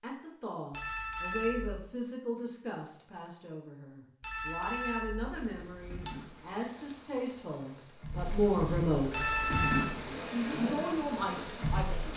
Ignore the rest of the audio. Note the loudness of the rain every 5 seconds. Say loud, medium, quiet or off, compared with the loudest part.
off, loud, loud.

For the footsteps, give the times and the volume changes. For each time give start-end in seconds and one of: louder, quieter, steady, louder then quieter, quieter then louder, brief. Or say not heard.
not heard.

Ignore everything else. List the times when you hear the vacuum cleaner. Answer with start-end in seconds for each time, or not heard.
9.2-12.1.